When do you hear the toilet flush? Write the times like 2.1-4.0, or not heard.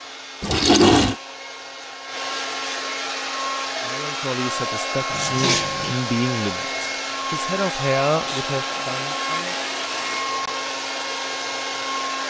0.4-1.1, 5.1-6.0, 8.2-10.2.